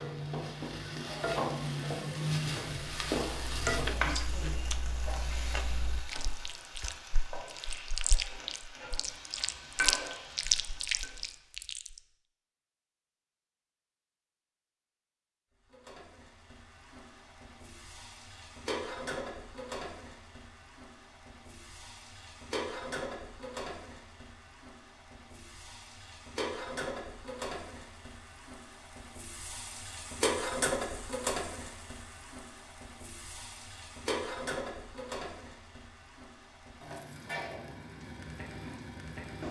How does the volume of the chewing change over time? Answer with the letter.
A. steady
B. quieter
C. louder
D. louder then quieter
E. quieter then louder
C.